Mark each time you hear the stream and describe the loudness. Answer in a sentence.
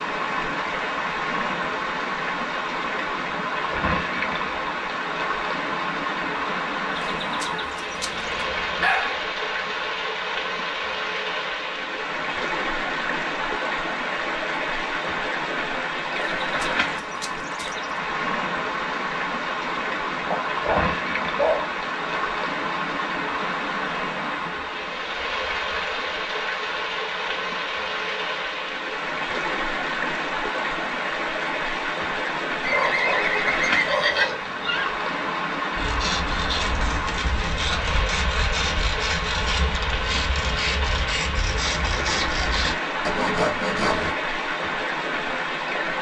The stream can be heard from 0.0 to 45.9 s, at a steady volume.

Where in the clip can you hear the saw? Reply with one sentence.
You can hear the saw from 35.8 to 44.1 s.